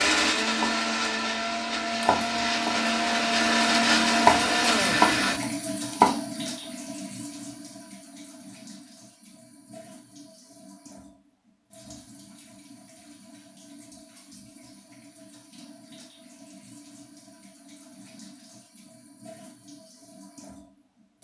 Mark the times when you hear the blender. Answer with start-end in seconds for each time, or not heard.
0.0-5.4.